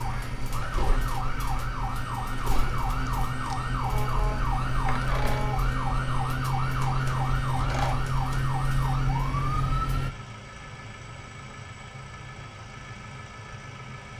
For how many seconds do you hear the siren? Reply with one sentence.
The siren can be heard for 10 seconds in total.